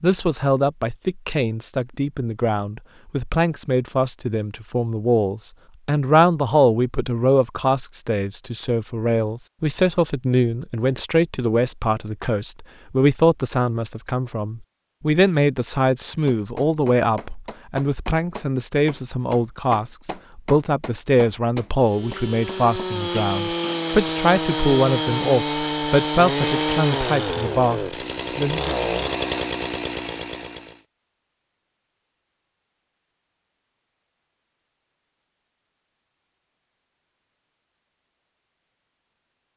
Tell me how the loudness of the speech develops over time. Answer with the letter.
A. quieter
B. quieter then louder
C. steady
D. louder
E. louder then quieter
C.